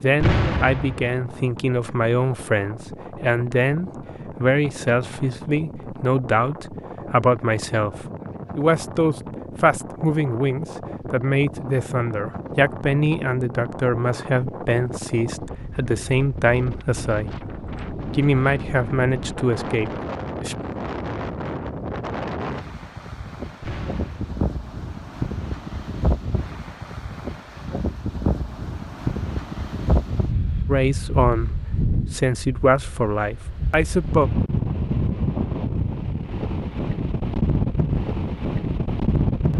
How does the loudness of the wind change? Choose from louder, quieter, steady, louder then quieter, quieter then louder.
louder.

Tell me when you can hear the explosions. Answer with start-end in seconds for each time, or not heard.
0.2-1.1, 23.6-24.4.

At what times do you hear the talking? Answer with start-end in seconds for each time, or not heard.
0.0-17.4, 18.1-20.6, 30.6-34.3.